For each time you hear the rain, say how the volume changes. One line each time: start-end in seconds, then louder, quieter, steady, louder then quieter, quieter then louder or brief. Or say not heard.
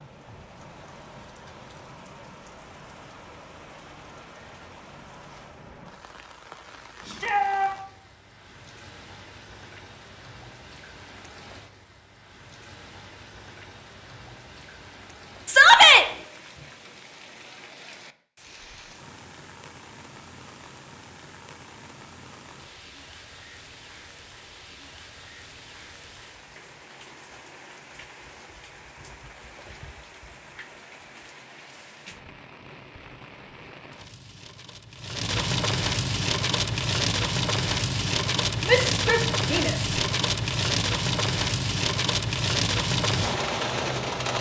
0.0-44.3 louder.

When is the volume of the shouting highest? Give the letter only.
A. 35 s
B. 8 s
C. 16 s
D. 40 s
C.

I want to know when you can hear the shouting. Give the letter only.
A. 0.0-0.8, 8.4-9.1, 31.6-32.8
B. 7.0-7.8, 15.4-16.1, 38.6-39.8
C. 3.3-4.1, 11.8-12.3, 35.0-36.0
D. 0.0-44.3
B.